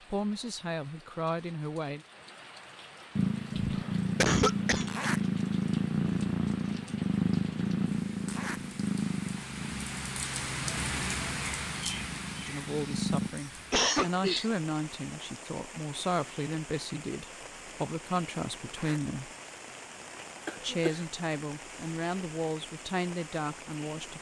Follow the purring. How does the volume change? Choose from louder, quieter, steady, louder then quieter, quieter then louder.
quieter.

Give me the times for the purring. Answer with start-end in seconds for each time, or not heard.
3.1-13.3.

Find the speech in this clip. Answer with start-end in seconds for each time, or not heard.
0.1-2.0, 12.4-19.3, 20.6-24.1.